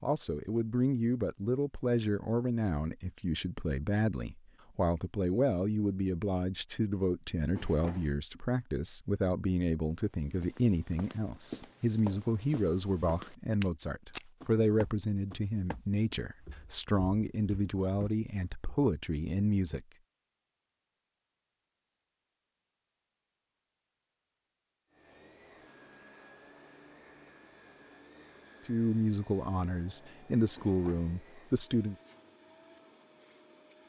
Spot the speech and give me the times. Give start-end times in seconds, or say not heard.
0.0-19.9, 28.6-31.9.